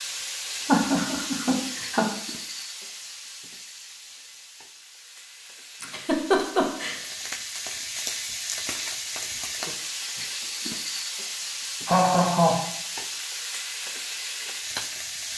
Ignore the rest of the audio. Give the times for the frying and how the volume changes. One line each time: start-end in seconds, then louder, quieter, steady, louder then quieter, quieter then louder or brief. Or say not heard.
0.0-15.3 quieter then louder.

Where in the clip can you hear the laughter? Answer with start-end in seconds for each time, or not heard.
0.7-2.1, 5.8-7.0, 11.8-12.7.